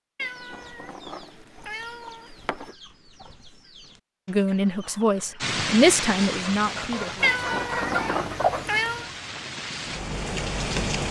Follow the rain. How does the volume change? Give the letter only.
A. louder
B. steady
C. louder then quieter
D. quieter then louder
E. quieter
D.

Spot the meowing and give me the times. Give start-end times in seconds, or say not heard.
0.1-2.8, 7.2-9.1.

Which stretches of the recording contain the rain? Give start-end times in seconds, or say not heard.
5.4-11.0.